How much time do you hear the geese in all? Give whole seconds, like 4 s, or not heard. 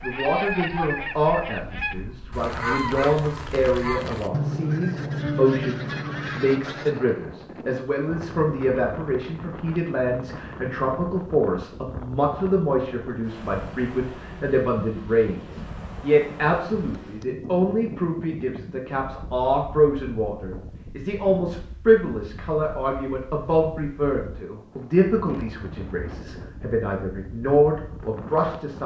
7 s.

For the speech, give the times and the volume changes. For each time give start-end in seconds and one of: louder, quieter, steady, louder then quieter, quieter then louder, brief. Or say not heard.
0.0-28.8 steady.